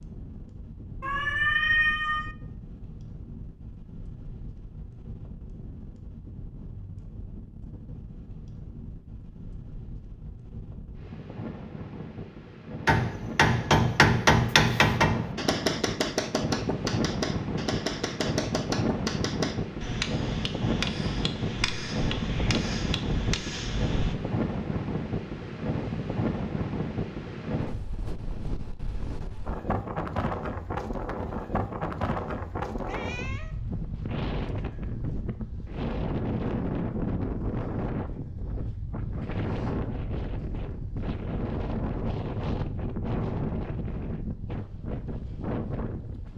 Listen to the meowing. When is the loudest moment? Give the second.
2 s.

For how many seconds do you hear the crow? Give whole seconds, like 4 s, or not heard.
not heard.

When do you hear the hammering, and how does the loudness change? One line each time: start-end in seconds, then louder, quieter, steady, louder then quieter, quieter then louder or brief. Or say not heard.
12.8-24.1 quieter.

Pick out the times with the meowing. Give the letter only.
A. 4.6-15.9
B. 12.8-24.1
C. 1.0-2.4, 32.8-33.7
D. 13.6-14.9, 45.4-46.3
C.